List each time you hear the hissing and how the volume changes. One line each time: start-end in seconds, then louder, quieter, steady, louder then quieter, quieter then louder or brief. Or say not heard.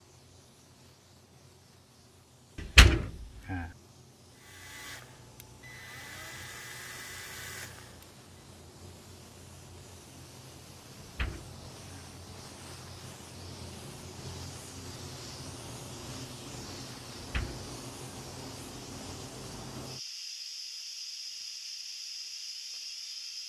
0.0-23.4 louder.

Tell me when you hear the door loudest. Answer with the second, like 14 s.
3 s.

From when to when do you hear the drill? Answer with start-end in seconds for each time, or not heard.
4.3-8.2.